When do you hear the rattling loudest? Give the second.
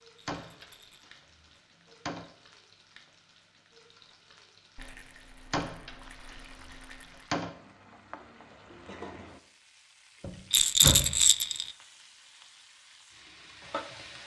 11 s.